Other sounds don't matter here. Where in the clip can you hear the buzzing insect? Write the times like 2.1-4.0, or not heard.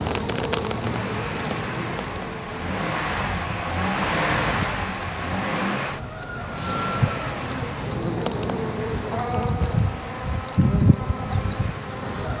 0.0-12.3.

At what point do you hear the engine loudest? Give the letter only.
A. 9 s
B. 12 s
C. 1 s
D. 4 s
D.